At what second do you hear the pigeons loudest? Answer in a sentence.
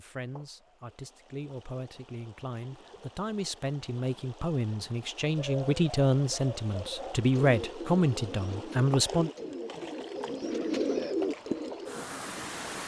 The loudest moment of the pigeons is at 11 seconds.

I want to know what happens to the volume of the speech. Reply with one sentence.
The loudness of the speech goes up.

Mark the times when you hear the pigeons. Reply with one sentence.
You can hear the pigeons from 5.3 to 12.1 s.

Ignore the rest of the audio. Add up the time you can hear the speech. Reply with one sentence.
You can hear the speech for 9 seconds altogether.